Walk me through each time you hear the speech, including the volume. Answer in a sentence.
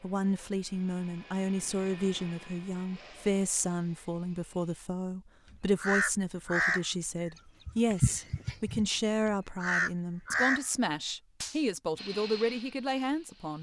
You can hear the speech from 0.0 to 13.5 s, at a steady volume.